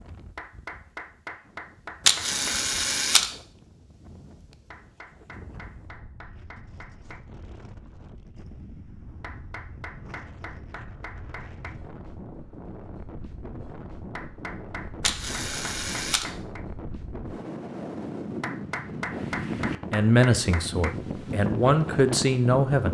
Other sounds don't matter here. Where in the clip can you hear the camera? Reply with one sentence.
The camera can be heard from 2.0 to 3.3 s and from 15.0 to 16.2 s.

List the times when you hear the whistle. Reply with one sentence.
You can't hear the whistle here.